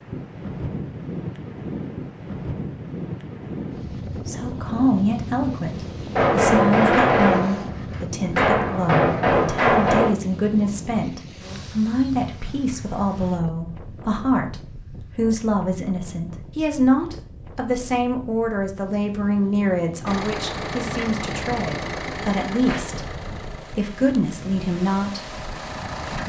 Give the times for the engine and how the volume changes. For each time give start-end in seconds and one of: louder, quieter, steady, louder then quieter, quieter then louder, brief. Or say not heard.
20.1-26.2 quieter then louder.